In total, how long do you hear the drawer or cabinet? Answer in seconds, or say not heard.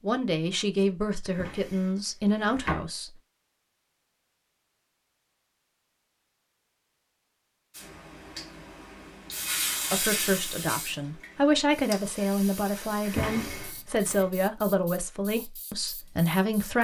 3 s.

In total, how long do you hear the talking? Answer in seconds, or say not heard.
10 s.